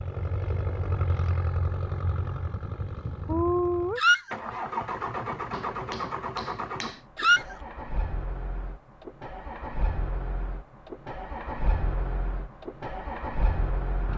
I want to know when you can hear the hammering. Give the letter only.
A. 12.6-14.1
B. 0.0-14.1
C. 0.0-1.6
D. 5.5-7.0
D.